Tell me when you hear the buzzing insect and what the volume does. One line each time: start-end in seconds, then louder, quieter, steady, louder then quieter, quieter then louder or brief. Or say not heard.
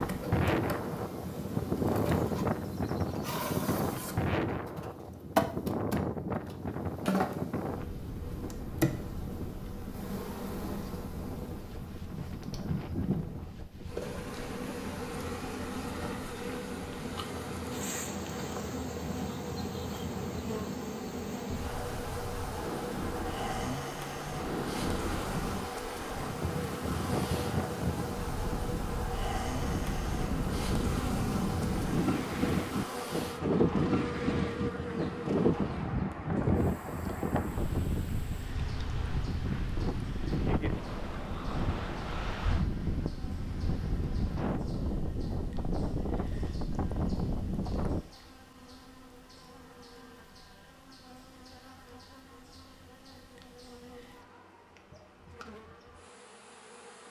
0.0-57.0 quieter.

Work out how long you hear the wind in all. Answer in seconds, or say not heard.
48 s.